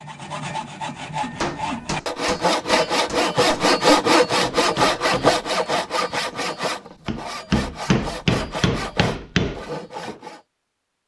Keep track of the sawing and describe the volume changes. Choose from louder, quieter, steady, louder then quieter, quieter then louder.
louder then quieter.